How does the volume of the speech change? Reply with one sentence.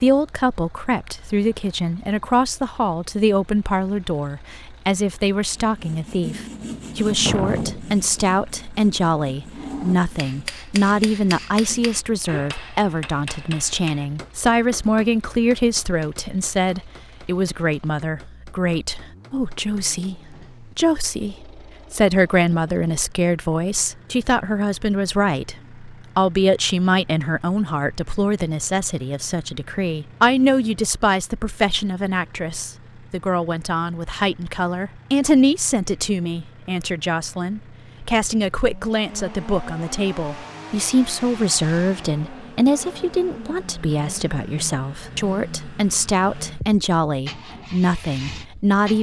The volume of the speech stays about the same.